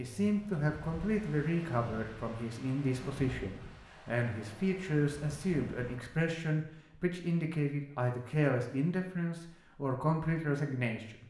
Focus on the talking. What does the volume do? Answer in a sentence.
The volume of the talking stays about the same.